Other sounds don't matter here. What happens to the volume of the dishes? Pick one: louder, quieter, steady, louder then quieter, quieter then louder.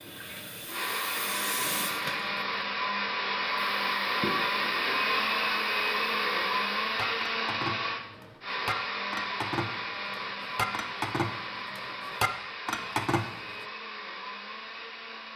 louder.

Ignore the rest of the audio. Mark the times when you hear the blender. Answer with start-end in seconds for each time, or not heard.
0.0-15.3.